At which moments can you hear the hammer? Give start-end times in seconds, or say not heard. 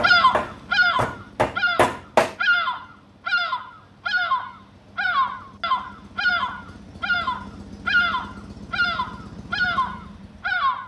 0.0-2.4.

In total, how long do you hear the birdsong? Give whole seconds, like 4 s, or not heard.
11 s.